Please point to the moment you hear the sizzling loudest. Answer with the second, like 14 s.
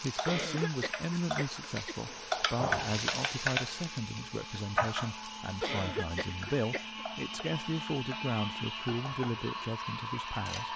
3 s.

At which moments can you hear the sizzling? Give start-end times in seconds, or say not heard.
0.0-10.7.